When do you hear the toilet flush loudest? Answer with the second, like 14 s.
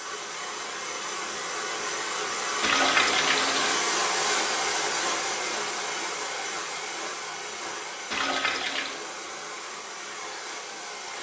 3 s.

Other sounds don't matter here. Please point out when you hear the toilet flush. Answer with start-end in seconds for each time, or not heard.
2.6-3.9, 8.1-9.1.